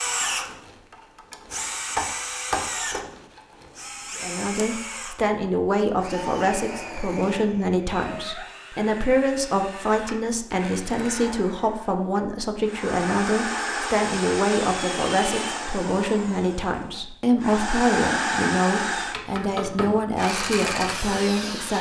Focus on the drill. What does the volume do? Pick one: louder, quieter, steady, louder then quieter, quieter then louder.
quieter then louder.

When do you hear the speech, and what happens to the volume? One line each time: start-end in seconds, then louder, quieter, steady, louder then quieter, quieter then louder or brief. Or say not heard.
4.2-21.7 steady.